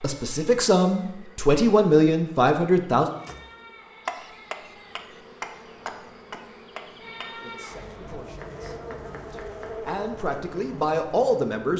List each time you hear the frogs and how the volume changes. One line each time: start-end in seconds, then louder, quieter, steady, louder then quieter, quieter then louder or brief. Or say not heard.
not heard.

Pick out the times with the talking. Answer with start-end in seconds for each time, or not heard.
0.0-3.1, 7.4-11.7.